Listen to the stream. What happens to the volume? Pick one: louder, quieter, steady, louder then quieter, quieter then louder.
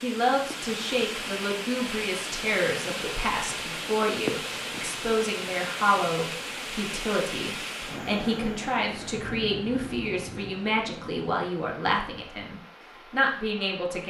quieter.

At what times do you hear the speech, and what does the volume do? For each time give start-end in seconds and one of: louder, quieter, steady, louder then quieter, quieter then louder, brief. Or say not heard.
0.0-14.0 steady.